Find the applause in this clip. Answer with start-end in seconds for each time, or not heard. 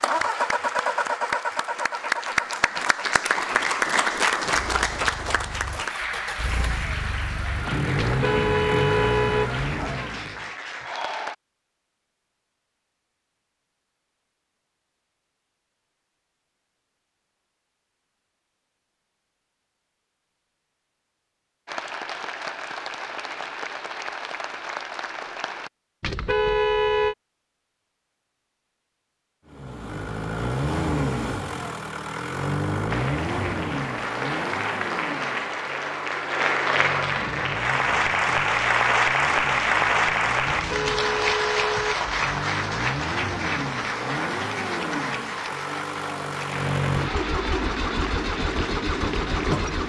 0.0-11.3, 21.6-25.7, 32.9-49.8.